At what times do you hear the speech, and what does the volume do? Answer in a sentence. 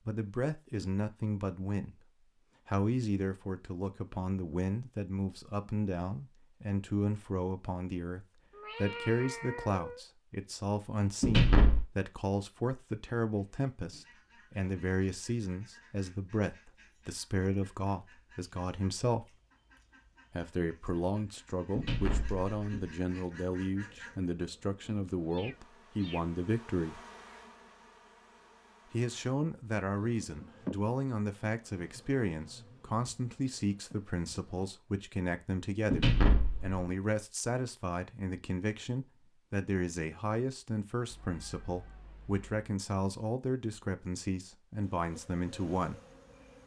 The speech can be heard from 0.1 to 19.4 s, at a steady volume; from 20.3 to 27.0 s, at a steady volume; and from 28.9 to 46.0 s, at a steady volume.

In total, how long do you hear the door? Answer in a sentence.
You can hear the door for 3 seconds altogether.